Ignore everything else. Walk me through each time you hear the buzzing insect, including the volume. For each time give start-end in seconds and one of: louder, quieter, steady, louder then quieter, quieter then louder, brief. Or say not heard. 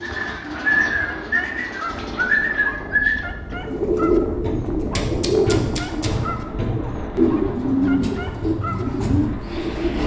not heard.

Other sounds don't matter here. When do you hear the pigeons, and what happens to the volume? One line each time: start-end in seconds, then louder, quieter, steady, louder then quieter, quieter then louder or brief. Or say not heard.
0.0-10.0 steady.